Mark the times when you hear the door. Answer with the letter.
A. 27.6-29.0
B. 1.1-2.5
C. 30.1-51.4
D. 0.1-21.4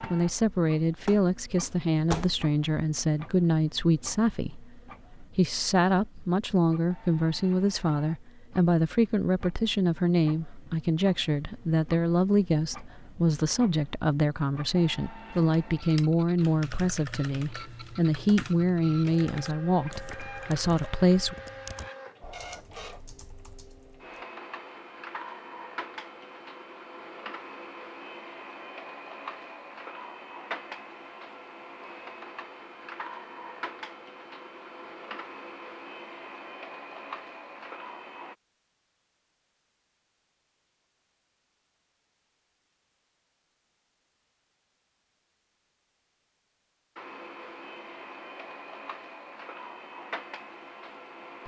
B.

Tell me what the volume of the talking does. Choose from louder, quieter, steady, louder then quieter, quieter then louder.
steady.